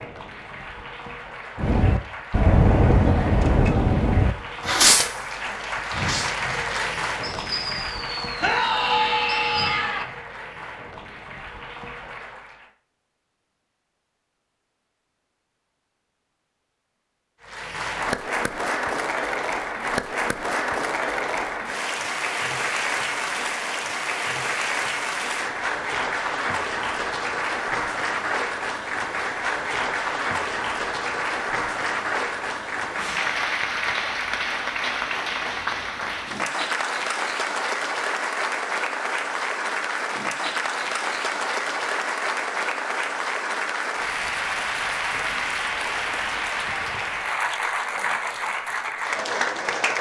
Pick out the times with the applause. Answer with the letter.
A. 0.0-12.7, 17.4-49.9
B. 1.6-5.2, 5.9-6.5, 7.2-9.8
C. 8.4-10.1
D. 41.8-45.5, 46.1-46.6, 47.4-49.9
A.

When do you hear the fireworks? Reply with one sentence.
The fireworks can be heard from 1.6 to 5.2 s, from 5.9 to 6.5 s and from 7.2 to 9.8 s.